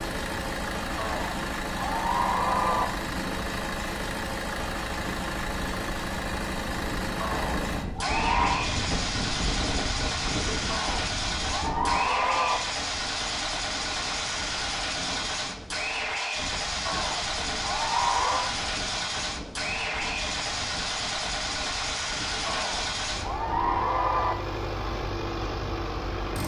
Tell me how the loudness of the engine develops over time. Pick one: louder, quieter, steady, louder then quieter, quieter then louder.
steady.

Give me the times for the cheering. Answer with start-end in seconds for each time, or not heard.
0.9-2.9, 7.2-8.7, 10.7-12.6, 16.9-18.5, 22.4-24.4.